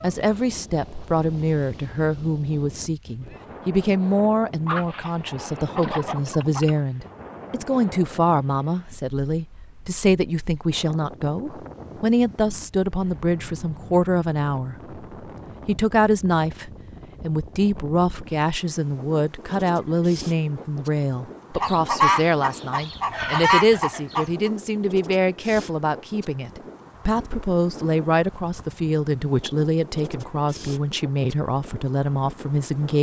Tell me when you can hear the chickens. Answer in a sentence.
You can hear the chickens from 4.7 to 6.8 s and from 21.6 to 24.5 s.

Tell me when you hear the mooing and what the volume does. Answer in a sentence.
You can't hear the mooing here.